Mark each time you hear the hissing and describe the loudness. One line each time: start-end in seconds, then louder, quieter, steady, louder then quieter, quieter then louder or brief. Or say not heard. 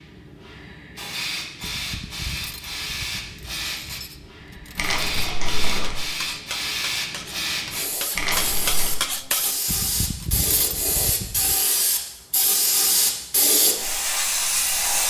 0.0-15.0 louder.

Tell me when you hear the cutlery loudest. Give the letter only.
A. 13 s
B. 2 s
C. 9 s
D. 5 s
C.